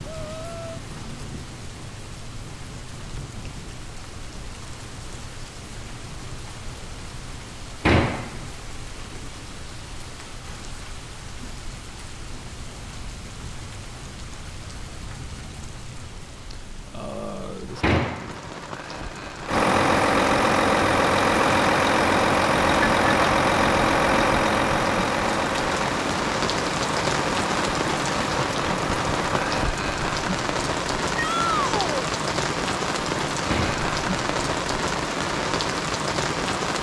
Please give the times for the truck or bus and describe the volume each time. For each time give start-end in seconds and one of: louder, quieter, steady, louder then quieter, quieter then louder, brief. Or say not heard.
19.4-29.7 quieter.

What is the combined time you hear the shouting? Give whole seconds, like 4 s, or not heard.
2 s.